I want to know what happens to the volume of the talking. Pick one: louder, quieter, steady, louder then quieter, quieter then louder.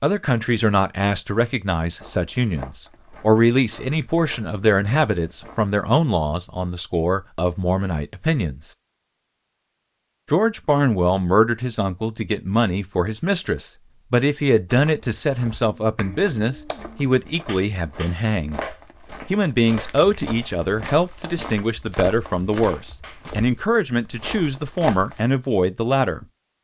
steady.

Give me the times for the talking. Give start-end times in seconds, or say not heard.
0.0-8.8, 10.3-18.6, 19.3-26.2.